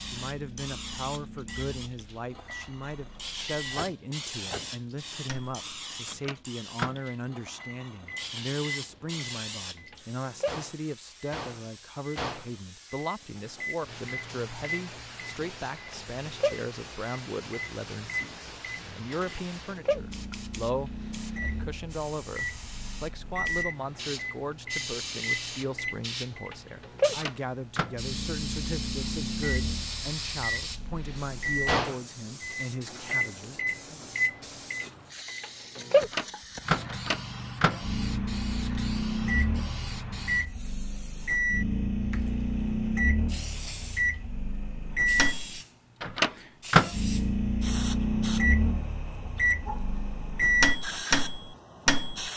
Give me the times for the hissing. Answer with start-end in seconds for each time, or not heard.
0.0-52.3.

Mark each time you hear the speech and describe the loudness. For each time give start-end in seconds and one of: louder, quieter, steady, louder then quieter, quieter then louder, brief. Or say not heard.
0.0-34.0 steady.